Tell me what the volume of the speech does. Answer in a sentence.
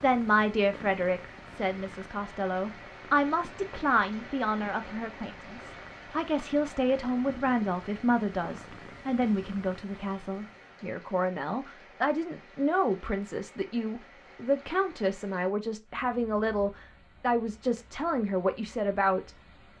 The volume of the speech stays about the same.